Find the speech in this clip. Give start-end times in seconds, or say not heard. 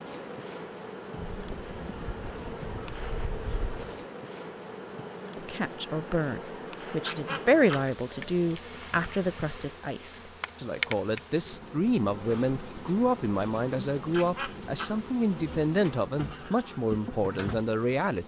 5.4-18.2.